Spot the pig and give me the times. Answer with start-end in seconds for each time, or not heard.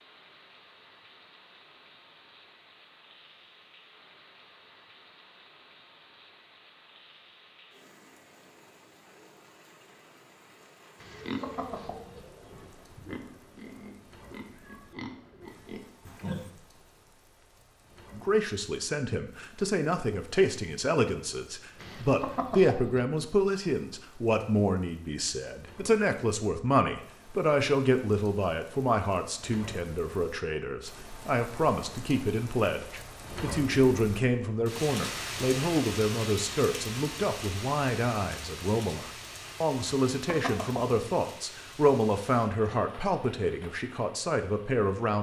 11.0-16.5.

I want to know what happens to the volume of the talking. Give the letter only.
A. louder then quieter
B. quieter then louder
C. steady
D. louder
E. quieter
C.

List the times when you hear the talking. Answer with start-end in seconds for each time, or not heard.
18.1-45.1.